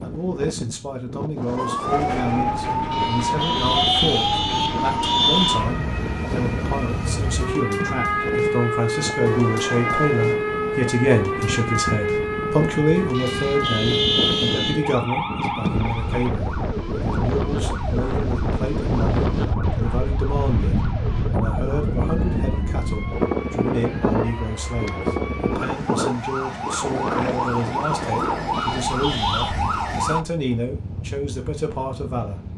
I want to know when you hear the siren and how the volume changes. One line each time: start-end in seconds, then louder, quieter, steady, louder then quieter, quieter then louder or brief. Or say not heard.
1.6-30.2 quieter then louder.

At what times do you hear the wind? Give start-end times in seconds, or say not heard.
0.0-32.5.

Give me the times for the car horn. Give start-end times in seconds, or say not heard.
2.9-5.6, 13.1-14.8, 28.5-29.6.